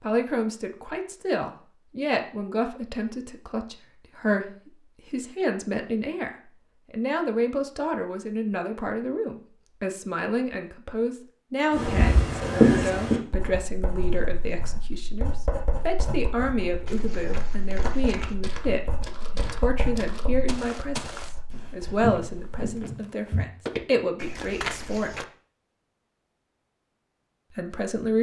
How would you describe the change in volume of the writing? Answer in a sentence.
The loudness of the writing goes down.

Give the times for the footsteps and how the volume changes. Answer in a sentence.
The footsteps can be heard from 16.9 to 25.2 s, getting louder.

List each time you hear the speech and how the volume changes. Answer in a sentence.
You can hear the speech from 0.0 to 25.2 s, at a steady volume; and briefly from 27.6 to 28.1 s.